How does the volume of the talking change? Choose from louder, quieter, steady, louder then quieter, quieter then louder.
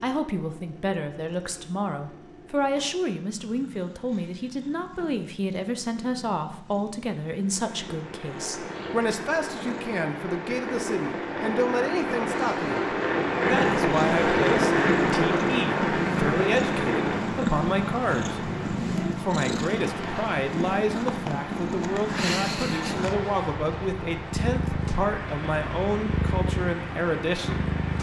steady.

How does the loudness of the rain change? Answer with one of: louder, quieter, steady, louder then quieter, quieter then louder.
louder then quieter.